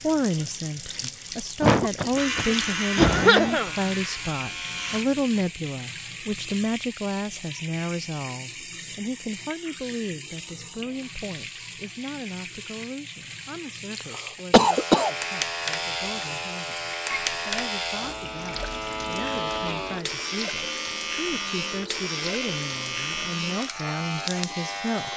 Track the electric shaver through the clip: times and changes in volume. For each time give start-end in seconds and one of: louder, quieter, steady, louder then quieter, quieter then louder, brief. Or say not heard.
2.1-5.0 brief
14.6-25.1 steady.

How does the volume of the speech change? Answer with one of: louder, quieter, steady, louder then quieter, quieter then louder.
quieter then louder.